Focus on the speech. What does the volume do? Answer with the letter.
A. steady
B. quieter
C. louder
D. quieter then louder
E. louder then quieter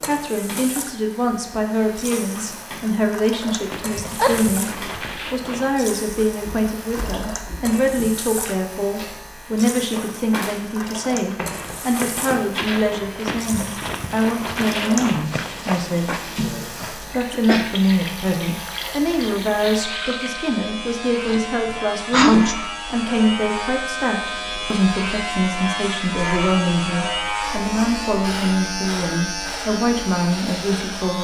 A.